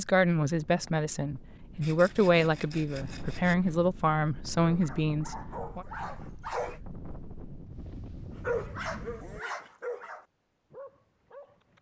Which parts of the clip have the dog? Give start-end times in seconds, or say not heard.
4.6-6.8, 8.3-11.7.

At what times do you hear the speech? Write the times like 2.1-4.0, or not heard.
0.0-5.8.